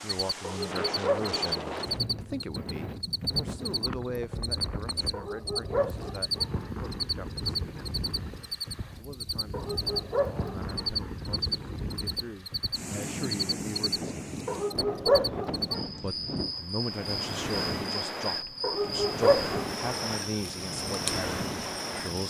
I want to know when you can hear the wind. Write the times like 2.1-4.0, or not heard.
0.0-22.2.